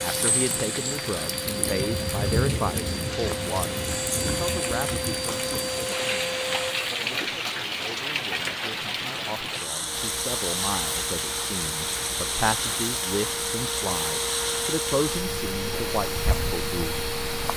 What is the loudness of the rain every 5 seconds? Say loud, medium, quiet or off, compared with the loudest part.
loud, loud, loud, medium.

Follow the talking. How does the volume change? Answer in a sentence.
The volume of the talking goes down, then up.